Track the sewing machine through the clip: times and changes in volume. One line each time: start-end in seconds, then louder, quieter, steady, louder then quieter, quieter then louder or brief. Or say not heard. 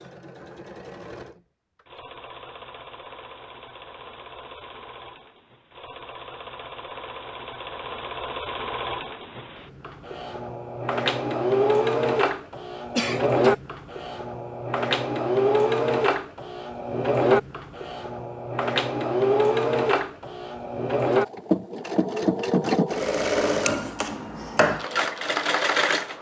0.0-26.1 louder.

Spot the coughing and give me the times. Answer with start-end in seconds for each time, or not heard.
12.9-13.6.